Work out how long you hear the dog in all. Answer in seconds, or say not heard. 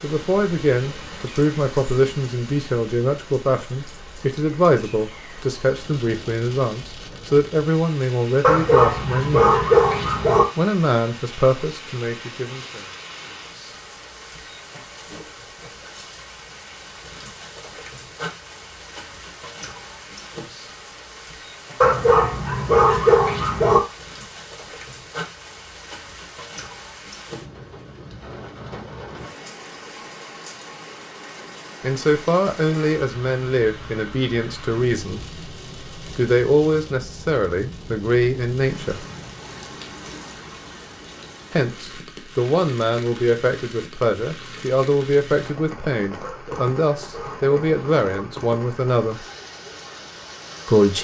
6 s.